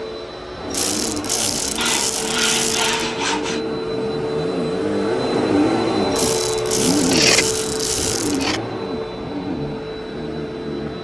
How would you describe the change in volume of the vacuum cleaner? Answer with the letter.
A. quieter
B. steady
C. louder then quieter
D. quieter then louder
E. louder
C.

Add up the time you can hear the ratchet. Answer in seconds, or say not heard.
5 s.